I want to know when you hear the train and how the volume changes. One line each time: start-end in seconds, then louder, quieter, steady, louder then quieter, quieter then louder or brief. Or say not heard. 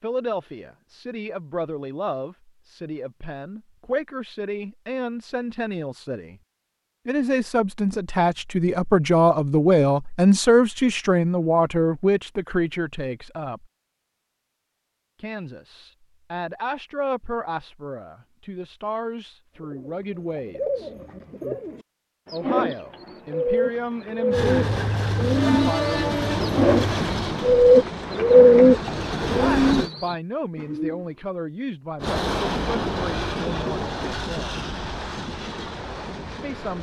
24.3-29.9 quieter then louder
32.0-36.7 quieter.